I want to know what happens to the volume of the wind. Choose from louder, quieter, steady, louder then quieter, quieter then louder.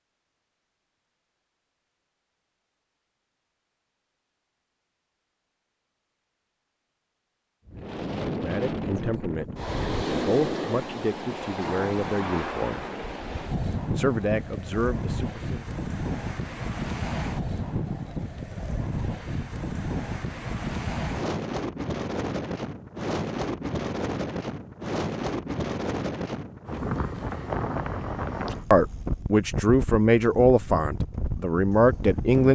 steady.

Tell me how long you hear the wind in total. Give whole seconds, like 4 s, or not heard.
25 s.